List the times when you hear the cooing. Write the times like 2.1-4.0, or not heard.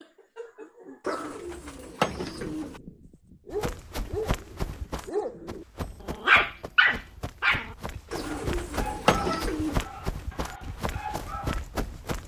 1.1-2.8, 8.1-9.8.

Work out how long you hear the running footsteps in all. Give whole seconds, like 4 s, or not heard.
9 s.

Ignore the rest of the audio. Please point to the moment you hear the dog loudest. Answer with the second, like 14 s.
6 s.